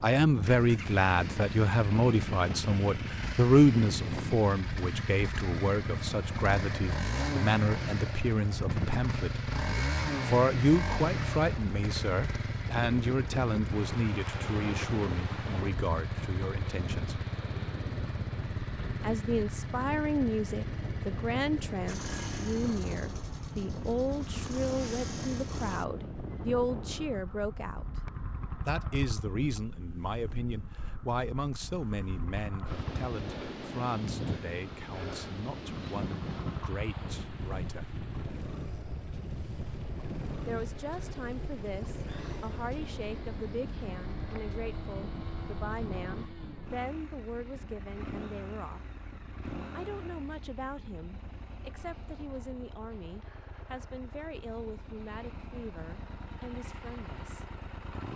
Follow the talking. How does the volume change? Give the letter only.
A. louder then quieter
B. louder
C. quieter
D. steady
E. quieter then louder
C.